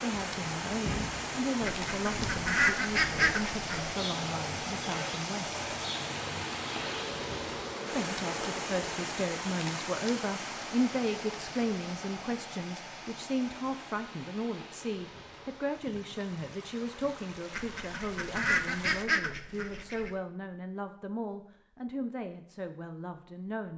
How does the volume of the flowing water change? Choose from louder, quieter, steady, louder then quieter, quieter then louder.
quieter.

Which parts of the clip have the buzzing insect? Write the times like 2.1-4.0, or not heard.
0.2-9.1.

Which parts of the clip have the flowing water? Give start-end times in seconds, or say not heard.
0.0-19.1.